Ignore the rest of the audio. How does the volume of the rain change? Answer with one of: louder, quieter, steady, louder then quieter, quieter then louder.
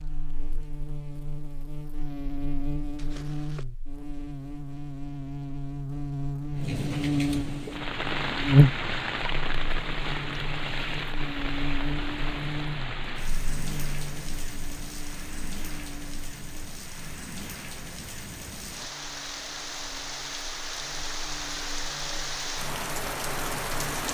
quieter then louder.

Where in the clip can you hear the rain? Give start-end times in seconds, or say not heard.
6.5-24.1.